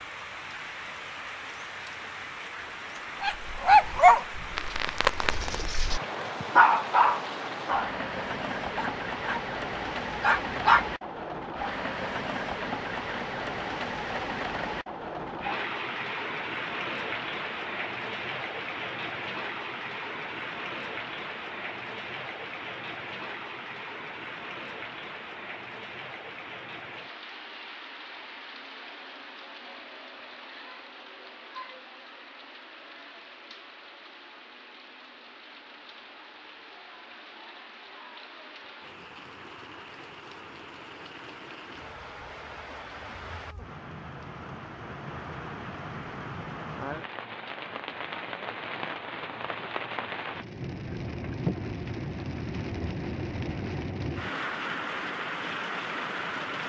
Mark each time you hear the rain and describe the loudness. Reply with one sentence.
The rain can be heard from 0.0 to 56.6 s, getting quieter then louder.